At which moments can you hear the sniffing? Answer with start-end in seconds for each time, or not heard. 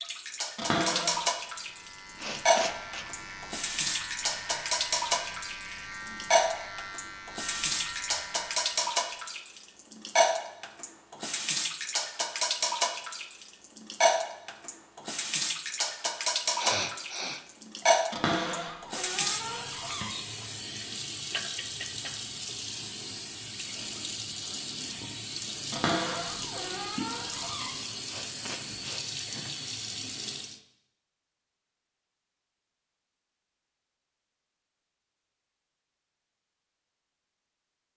2.1-3.0, 16.6-17.9, 28.1-29.7.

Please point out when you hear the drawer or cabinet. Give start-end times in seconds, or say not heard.
0.6-1.2, 18.1-20.1, 25.7-27.8.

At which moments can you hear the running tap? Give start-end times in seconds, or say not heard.
0.0-30.6.